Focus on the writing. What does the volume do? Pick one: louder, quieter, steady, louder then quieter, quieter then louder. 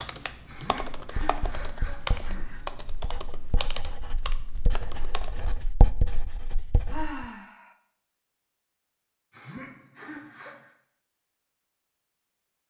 louder.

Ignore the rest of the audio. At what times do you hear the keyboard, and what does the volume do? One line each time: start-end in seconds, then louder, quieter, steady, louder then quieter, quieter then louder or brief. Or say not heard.
0.0-5.5 louder then quieter.